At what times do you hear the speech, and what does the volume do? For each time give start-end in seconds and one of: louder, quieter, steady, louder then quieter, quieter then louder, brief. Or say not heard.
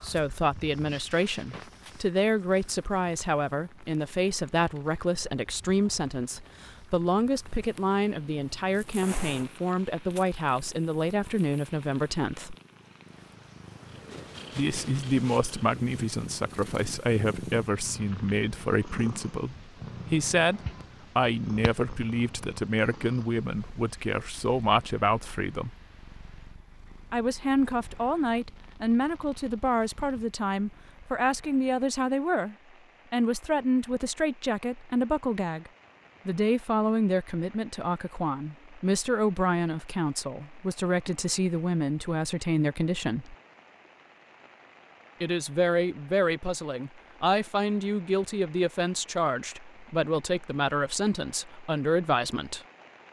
0.0-12.6 steady
14.6-25.8 steady
27.1-43.4 steady
45.2-52.6 steady.